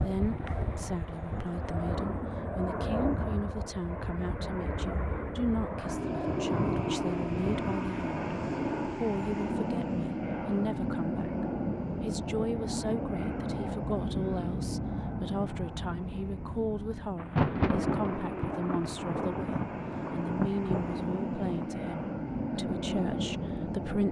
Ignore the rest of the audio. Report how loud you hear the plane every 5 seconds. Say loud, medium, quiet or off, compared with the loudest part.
loud, loud, loud, medium, loud.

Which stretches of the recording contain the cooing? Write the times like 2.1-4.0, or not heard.
not heard.